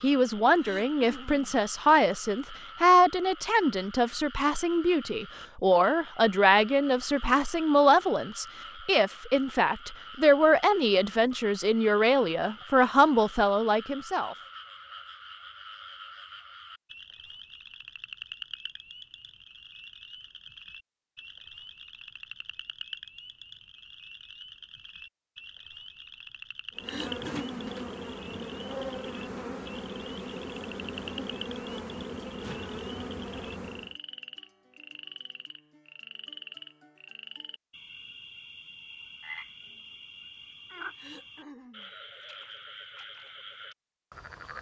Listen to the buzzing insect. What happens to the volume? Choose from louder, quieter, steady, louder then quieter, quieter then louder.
steady.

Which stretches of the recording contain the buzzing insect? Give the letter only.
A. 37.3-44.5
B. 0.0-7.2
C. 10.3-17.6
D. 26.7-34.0
D.